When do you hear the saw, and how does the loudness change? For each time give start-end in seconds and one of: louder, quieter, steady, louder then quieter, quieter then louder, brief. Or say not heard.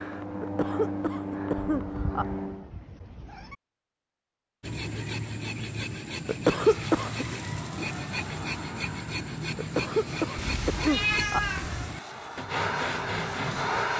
4.6-13.7 steady.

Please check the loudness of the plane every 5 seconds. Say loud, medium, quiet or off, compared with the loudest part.
loud, medium, loud.